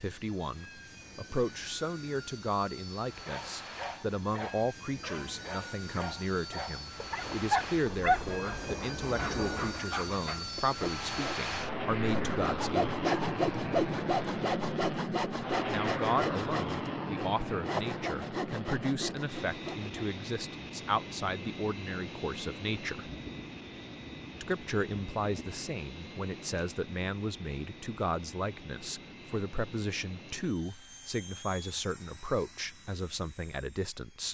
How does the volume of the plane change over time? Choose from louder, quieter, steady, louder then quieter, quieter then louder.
louder then quieter.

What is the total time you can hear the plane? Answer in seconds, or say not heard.
34 s.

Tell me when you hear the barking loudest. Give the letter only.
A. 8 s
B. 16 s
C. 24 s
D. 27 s
A.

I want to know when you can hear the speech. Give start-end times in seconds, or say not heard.
0.0-13.2, 15.7-23.1, 24.4-34.2.